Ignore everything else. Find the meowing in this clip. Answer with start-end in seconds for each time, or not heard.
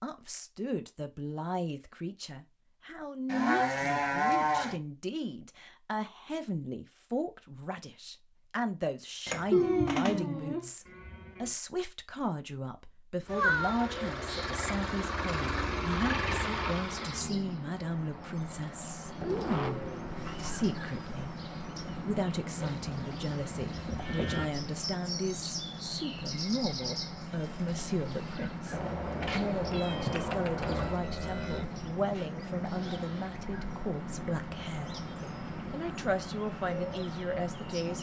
9.2-10.2, 13.2-14.5, 28.7-31.0.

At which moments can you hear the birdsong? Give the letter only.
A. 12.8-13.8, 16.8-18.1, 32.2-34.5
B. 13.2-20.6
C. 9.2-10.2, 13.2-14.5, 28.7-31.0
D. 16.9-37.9
D.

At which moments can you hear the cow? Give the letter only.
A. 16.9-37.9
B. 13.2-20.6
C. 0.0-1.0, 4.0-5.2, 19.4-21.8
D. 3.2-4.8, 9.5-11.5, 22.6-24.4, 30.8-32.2
D.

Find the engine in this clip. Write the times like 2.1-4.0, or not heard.
13.2-20.6.